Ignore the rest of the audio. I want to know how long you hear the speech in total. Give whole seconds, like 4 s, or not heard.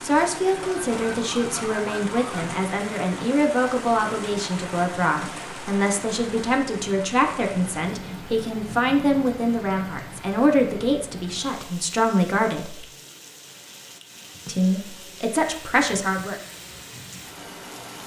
15 s.